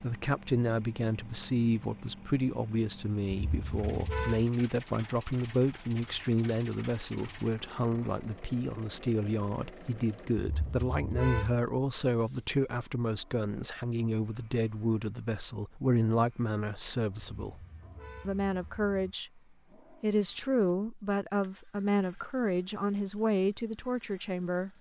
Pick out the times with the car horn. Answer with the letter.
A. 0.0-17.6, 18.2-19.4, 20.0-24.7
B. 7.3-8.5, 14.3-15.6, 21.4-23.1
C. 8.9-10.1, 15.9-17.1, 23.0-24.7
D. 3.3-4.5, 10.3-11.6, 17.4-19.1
D.